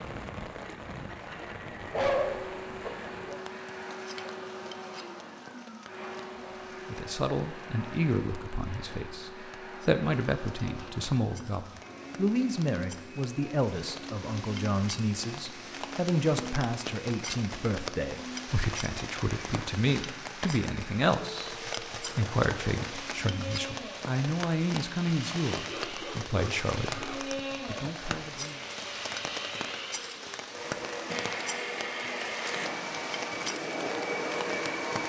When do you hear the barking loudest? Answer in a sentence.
The volume of the barking peaks at 2 seconds.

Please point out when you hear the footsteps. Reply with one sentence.
The footsteps can't be heard in this clip.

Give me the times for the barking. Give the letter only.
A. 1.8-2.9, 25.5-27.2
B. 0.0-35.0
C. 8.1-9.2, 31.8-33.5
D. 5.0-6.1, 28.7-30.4
A.